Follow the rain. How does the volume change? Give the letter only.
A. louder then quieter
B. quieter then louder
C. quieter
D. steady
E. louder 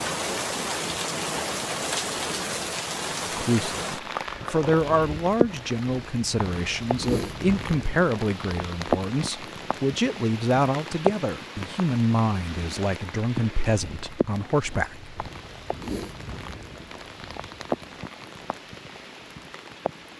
C.